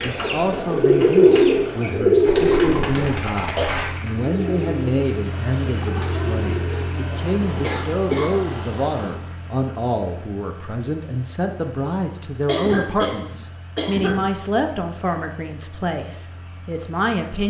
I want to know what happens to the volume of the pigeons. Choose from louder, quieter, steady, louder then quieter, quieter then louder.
quieter.